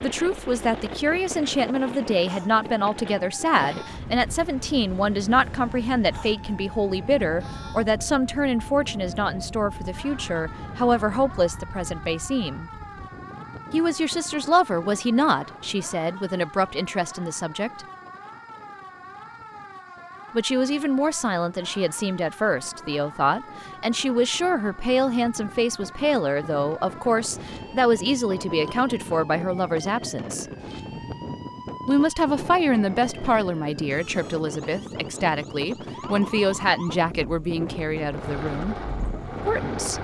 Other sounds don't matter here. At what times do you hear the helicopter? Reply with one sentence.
You can hear the helicopter from 38.1 to 39.9 s.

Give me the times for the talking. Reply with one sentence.
The talking can be heard from 0.0 to 12.7 s, from 13.7 to 17.9 s, from 20.3 to 30.4 s, from 31.9 to 38.8 s and from 39.5 to 39.9 s.